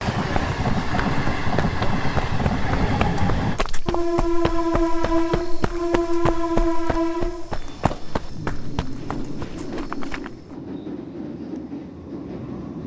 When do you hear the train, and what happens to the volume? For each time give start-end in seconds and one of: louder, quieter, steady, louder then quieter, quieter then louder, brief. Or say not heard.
0.0-12.8 quieter.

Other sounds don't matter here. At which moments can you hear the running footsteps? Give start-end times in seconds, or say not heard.
0.1-10.6.